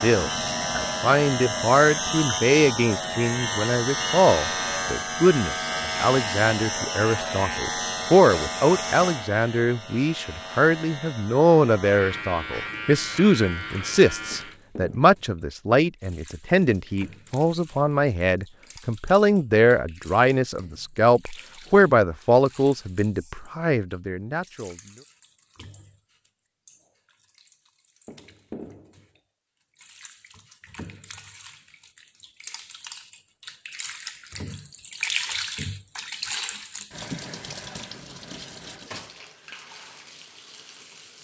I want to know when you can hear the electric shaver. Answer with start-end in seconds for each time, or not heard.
0.0-14.6.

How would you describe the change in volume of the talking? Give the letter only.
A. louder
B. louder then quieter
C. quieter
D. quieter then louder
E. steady
E.